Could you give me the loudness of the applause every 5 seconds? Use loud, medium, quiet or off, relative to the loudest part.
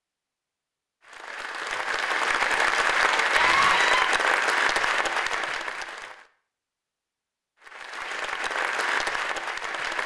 loud, medium.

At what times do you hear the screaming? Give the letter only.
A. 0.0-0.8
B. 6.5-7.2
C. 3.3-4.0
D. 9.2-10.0
C.